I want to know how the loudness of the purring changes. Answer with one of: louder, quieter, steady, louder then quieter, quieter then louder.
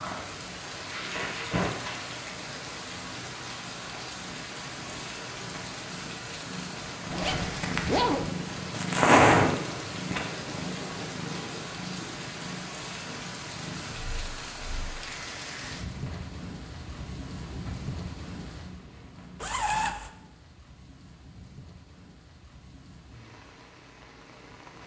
louder then quieter.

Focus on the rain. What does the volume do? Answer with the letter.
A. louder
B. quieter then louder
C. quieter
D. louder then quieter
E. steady
C.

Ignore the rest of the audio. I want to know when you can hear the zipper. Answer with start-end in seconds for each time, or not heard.
7.1-8.3, 19.4-20.1.